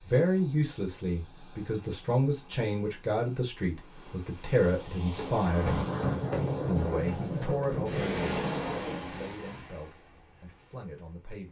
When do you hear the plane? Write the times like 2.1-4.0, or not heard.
0.0-11.4.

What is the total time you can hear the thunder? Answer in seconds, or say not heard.
4 s.